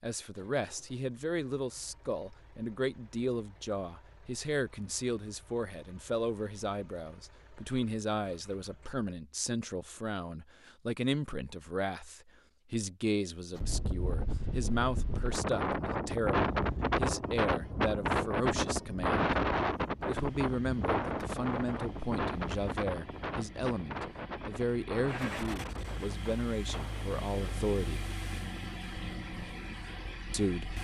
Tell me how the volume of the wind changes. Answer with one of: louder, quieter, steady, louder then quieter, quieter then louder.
quieter.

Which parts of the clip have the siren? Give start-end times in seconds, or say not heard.
not heard.